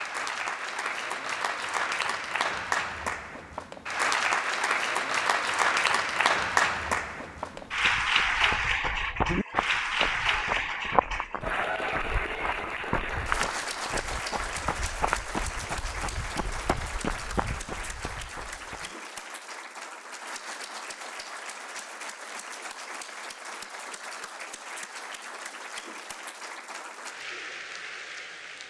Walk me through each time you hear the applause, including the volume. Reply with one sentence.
You can hear the applause from 0.0 to 28.6 s, getting quieter.